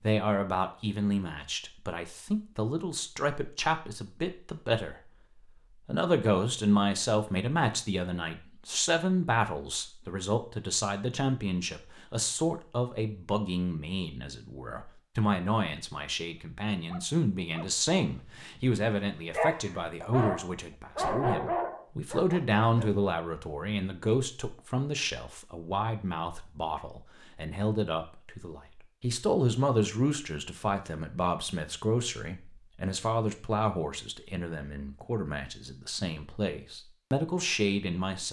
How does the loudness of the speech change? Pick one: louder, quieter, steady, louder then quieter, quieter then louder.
steady.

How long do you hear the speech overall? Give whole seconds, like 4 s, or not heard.
37 s.